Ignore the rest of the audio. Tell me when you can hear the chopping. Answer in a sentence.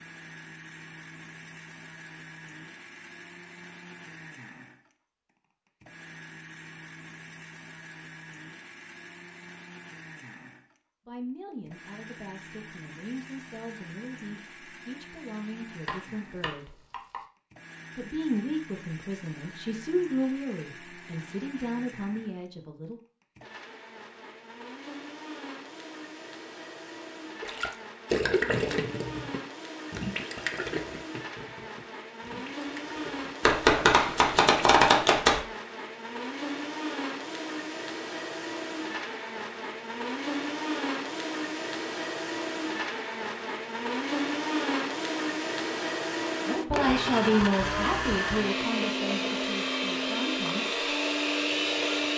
You can hear the chopping from 15.8 to 17.2 s and from 33.4 to 35.4 s.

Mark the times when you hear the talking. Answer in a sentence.
You can hear the talking from 11.1 to 16.8 s, from 17.9 to 23.0 s and from 46.5 to 50.8 s.